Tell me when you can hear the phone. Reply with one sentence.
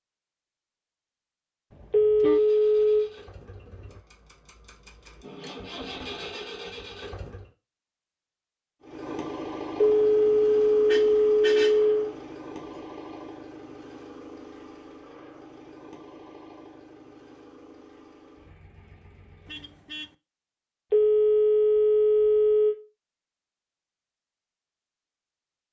You can hear the phone from 1.9 to 3.1 s, from 9.8 to 12.1 s and from 20.9 to 22.8 s.